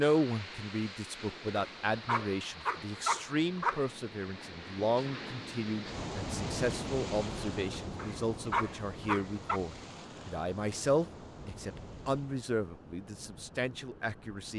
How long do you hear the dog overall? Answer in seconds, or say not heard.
4 s.